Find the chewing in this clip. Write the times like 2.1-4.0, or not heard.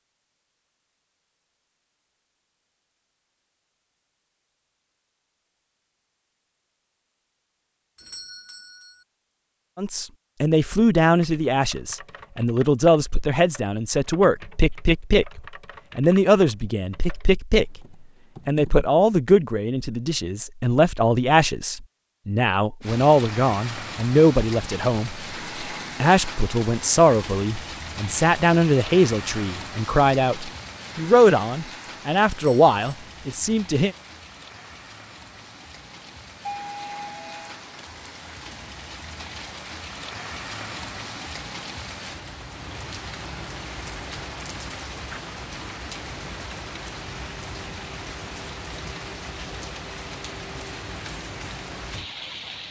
not heard.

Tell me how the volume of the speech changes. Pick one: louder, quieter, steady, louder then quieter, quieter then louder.
steady.